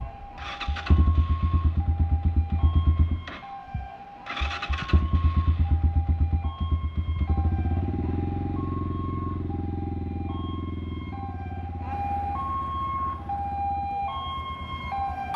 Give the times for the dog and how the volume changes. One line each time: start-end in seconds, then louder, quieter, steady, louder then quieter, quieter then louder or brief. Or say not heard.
not heard.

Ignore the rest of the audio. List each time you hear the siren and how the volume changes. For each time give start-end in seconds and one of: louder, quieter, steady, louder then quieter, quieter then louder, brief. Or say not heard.
0.0-15.3 louder.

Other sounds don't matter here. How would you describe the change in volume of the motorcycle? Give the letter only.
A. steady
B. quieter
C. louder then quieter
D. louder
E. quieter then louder
B.